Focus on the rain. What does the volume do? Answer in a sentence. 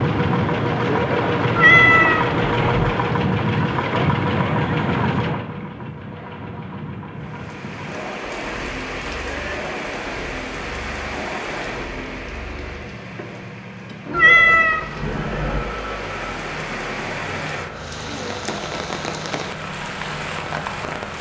The loudness of the rain goes down, then up.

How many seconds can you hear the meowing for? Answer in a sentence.
The meowing can be heard for 3 seconds in total.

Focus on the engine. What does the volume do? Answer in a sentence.
The loudness of the engine goes down.